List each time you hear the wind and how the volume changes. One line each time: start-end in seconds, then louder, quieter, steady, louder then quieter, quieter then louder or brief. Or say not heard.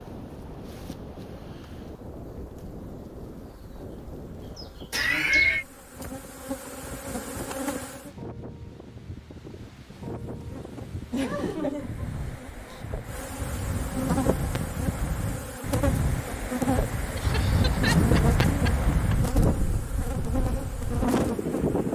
0.0-21.9 louder.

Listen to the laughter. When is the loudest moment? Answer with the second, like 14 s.
5 s.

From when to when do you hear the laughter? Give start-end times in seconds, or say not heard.
4.9-5.7, 11.1-12.8, 17.1-19.1.